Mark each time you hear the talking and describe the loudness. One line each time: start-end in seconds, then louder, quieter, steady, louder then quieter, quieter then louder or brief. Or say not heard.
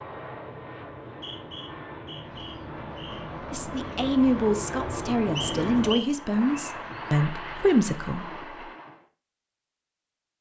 3.5-8.4 quieter then louder.